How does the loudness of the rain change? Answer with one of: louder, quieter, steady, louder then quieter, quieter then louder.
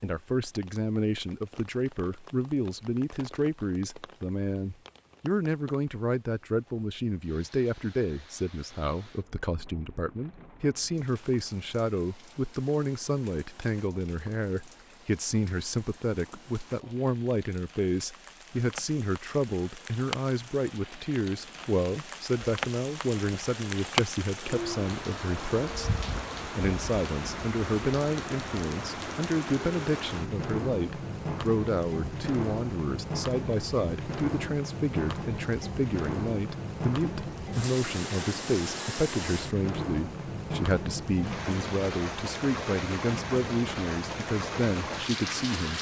louder.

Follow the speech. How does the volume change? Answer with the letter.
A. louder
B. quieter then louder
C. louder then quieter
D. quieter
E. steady
E.